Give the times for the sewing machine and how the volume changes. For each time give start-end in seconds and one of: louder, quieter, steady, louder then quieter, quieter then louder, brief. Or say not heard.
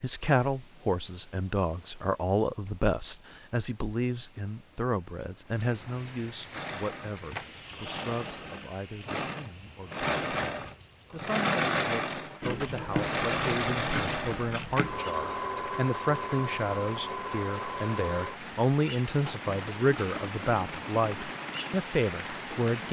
6.5-22.8 louder then quieter.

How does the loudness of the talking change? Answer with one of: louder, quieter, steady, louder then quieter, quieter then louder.
quieter then louder.